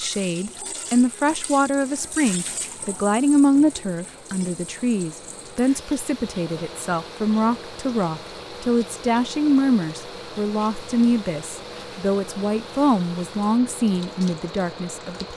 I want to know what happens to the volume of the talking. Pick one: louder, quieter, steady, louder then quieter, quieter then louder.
steady.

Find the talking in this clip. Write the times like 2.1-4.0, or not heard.
0.0-15.3.